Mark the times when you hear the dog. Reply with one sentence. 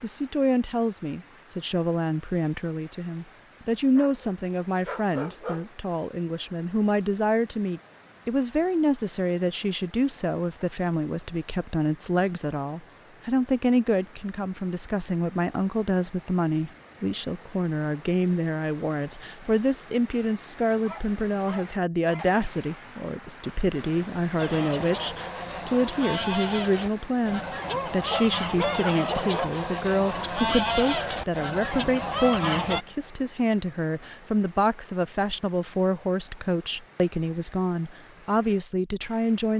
The dog can be heard from 4.0 to 5.7 s, from 20.9 to 22.3 s and from 27.6 to 29.6 s.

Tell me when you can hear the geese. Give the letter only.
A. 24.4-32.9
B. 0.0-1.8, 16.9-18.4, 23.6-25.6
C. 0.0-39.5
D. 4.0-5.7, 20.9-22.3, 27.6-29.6
A.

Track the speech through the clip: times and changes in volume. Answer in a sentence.
The speech can be heard from 0.0 to 39.5 s, at a steady volume.